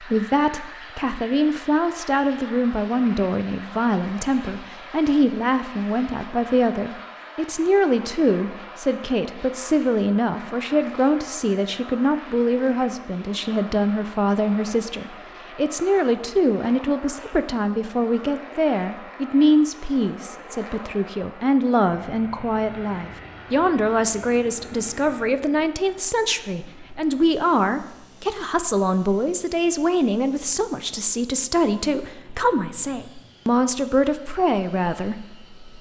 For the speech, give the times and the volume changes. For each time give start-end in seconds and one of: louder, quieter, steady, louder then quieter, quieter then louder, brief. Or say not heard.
0.0-35.5 steady.